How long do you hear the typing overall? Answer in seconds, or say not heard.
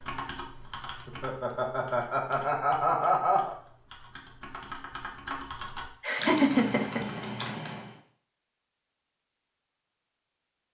8 s.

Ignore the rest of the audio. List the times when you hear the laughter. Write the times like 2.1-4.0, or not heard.
1.1-3.5, 6.0-7.2.